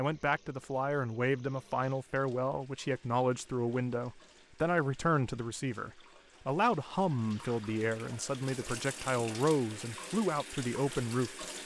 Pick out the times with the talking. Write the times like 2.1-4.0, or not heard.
0.0-11.4.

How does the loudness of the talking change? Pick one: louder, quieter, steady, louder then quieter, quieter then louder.
steady.